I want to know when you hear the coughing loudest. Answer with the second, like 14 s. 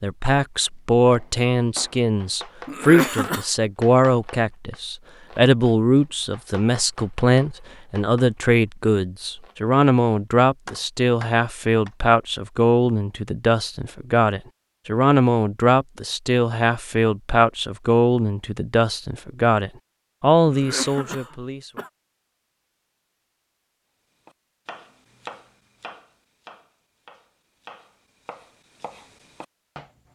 3 s.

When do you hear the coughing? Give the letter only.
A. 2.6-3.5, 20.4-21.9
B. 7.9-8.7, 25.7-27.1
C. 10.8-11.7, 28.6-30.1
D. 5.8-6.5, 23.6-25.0
A.